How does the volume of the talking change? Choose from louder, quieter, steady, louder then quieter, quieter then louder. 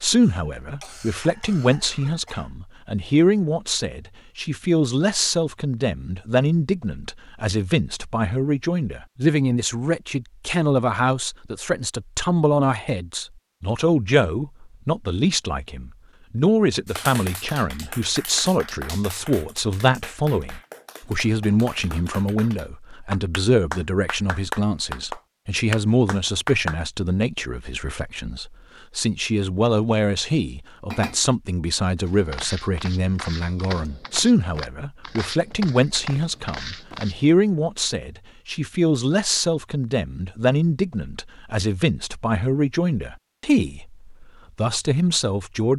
steady.